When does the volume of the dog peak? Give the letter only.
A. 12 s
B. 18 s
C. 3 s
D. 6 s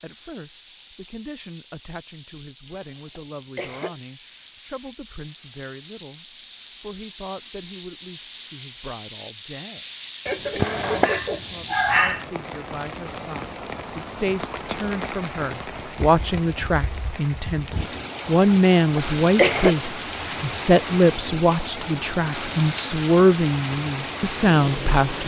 A.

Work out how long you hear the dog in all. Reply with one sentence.
The dog can be heard for 2 seconds in total.